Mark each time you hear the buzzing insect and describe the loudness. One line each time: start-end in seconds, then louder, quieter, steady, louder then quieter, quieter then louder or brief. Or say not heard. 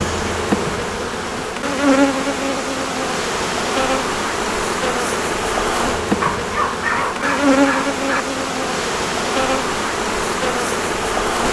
0.0-11.4 steady.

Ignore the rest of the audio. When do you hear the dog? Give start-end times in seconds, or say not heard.
6.2-8.2.